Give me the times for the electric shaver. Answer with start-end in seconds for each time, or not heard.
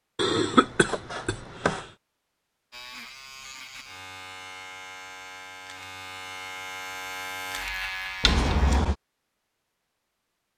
2.7-8.8.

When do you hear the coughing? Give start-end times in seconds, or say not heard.
0.1-1.9, 8.2-8.9.